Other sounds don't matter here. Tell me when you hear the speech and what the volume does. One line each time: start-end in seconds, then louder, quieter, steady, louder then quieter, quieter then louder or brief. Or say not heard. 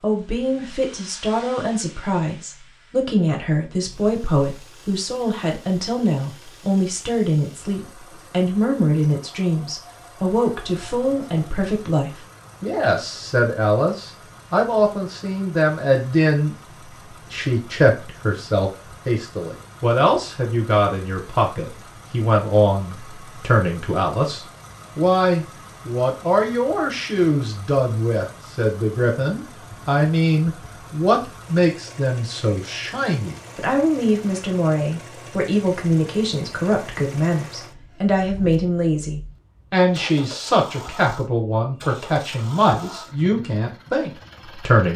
0.0-16.6 steady
17.3-44.9 steady.